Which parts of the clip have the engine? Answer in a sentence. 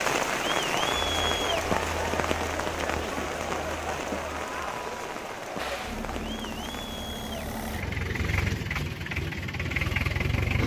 The engine can be heard from 5.5 to 10.6 s.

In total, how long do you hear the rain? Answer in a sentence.
You can hear the rain for 7 seconds altogether.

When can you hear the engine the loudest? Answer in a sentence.
The loudest moment of the engine is at 10 seconds.